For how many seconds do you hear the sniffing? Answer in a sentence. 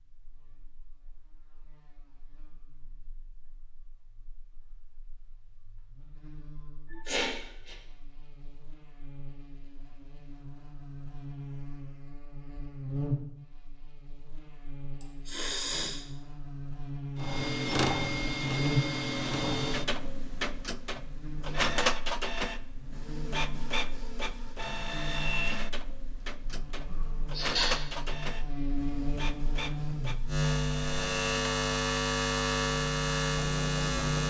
The sniffing can be heard for 3 seconds in total.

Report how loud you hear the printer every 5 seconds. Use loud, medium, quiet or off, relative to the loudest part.
off, off, off, loud, loud, medium, medium.